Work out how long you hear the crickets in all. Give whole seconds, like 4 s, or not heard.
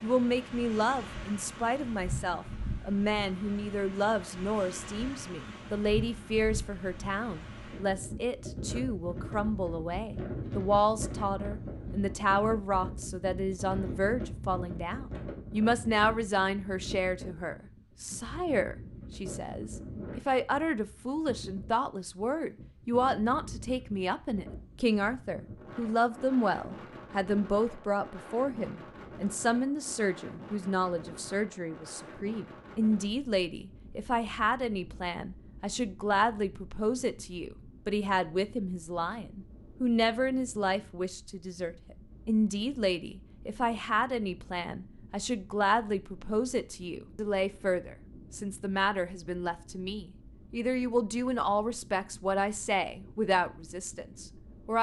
not heard.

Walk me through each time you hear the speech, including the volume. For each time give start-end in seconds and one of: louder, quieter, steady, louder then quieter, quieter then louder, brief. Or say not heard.
0.0-54.7 steady.